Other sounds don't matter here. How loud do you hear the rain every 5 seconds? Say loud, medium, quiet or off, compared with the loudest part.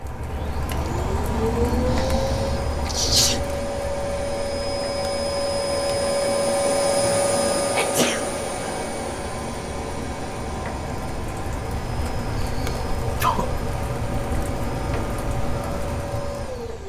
loud, medium, loud, loud.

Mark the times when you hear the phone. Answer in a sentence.
You can't hear the phone here.